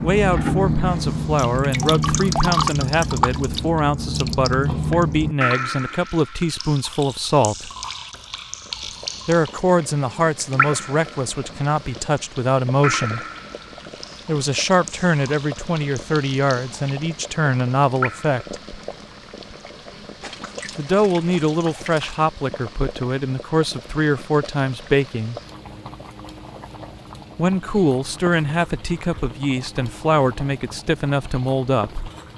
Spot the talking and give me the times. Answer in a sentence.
The talking can be heard from 0.0 to 7.7 s, from 9.2 to 13.2 s, from 14.2 to 18.6 s, from 20.8 to 25.4 s and from 27.4 to 32.1 s.